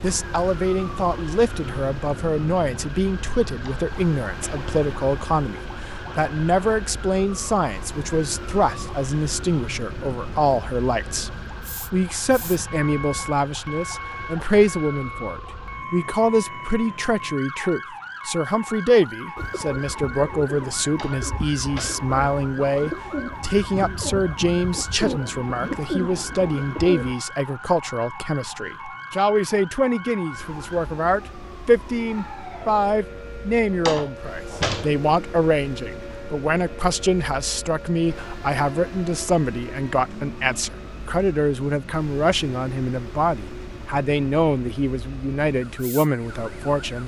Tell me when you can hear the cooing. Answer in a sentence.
You can hear the cooing from 19.4 to 27.1 s.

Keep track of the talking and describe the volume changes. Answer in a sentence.
The volume of the talking stays about the same.